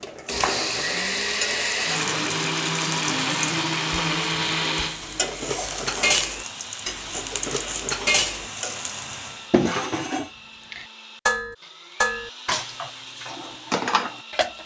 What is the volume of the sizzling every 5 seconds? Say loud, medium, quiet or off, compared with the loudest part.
loud, loud, off.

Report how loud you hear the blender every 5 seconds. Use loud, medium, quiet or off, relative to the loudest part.
loud, quiet, quiet.